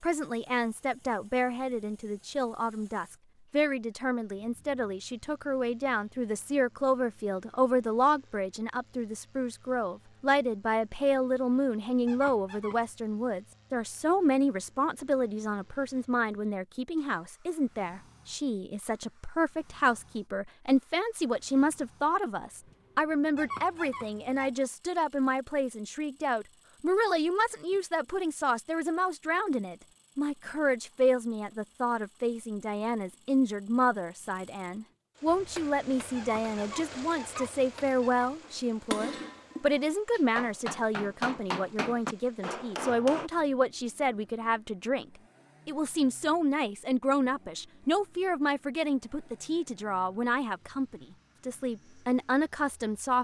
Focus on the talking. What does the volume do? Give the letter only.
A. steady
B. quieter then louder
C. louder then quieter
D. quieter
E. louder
A.